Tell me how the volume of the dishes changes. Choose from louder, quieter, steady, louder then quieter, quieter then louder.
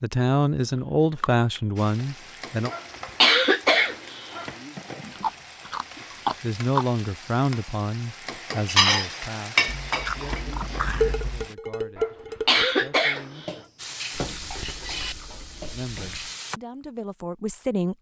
quieter.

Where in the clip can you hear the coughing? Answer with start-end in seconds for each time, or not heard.
2.7-4.5, 11.9-13.5.